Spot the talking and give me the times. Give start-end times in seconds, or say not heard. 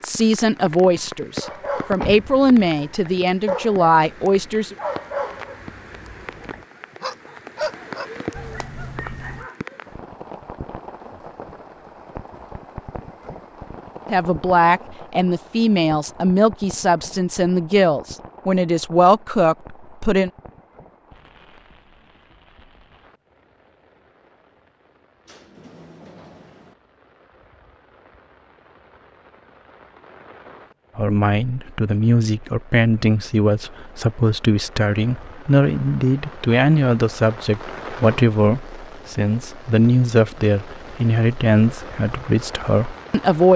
0.0-4.8, 14.1-20.3, 30.9-43.5.